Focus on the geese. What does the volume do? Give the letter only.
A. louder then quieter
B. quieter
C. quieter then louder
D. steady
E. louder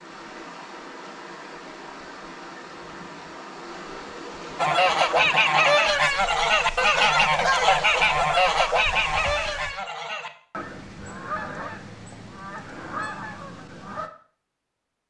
B.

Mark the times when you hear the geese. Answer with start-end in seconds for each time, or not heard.
4.5-14.1.